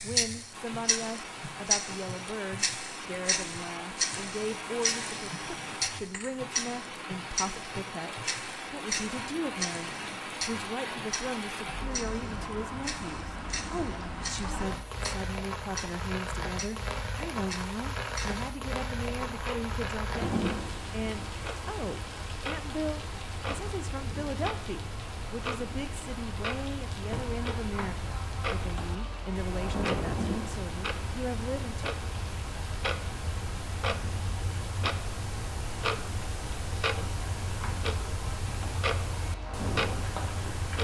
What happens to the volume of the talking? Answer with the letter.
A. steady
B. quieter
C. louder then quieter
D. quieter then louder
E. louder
A.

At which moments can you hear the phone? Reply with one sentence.
The phone can't be heard in this clip.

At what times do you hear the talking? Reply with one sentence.
The talking can be heard from 0.0 to 31.9 s.